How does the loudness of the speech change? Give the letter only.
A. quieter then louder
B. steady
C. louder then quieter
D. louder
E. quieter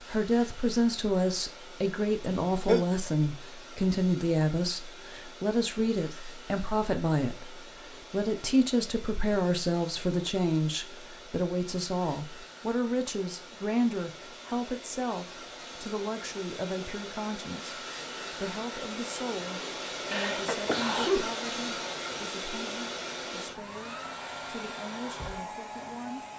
E.